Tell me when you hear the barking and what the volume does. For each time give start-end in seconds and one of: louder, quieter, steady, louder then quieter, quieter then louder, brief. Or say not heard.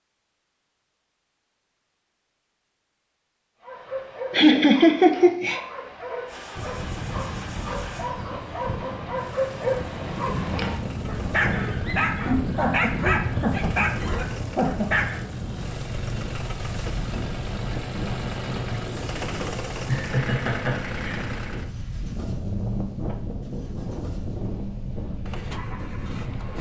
3.6-15.2 louder.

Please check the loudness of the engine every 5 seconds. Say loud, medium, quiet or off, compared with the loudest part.
off, medium, medium, loud, loud, medium.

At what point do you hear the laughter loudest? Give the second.
5 s.